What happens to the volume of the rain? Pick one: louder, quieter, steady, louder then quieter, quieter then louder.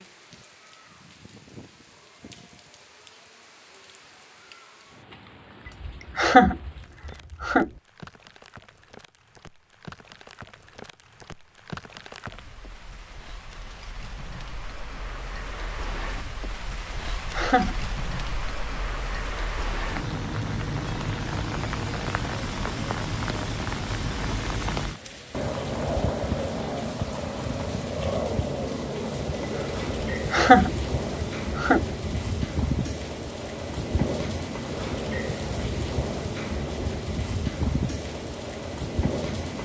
louder.